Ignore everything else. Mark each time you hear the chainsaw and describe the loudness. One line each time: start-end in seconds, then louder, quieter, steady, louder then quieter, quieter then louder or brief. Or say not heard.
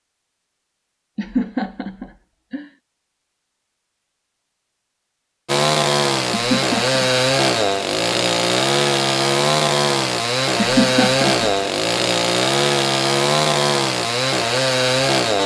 5.5-15.4 steady.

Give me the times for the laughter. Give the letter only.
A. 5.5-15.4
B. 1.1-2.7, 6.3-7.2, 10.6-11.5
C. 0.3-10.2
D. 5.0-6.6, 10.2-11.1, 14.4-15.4
B.